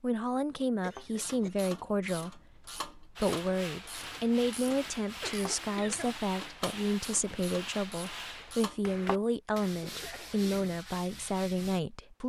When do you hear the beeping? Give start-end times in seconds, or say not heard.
not heard.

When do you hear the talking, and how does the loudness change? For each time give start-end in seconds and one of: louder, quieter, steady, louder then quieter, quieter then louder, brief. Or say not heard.
0.0-12.2 steady.